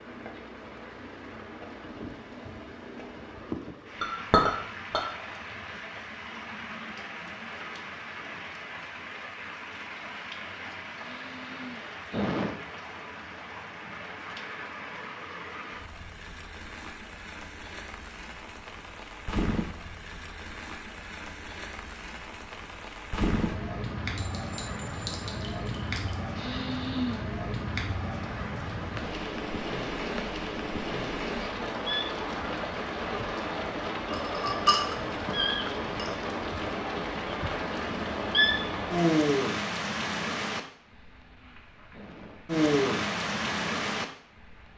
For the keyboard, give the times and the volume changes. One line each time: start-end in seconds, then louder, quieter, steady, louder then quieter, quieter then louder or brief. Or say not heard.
not heard.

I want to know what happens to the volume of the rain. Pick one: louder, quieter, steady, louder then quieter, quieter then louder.
louder.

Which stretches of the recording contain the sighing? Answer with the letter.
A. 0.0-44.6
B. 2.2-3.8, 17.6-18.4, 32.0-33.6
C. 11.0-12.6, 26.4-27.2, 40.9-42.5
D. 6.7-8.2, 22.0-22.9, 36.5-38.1
C.